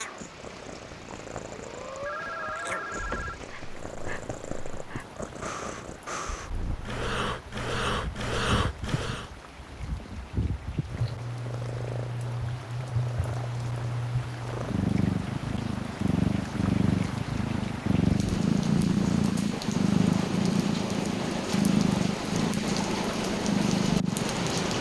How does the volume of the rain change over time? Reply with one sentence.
The volume of the rain goes up.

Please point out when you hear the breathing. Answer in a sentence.
The breathing can be heard from 1.5 to 9.3 s.